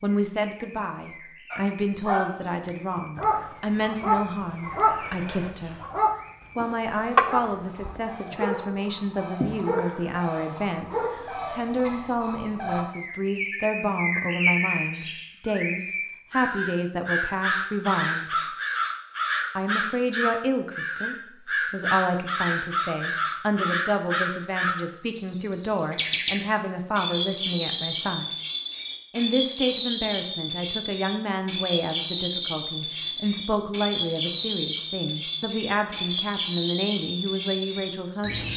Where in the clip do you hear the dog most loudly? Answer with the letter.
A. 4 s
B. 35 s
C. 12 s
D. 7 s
D.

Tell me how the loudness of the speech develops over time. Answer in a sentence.
The loudness of the speech stays about the same.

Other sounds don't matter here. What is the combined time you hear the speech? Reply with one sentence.
The speech can be heard for 36 seconds in total.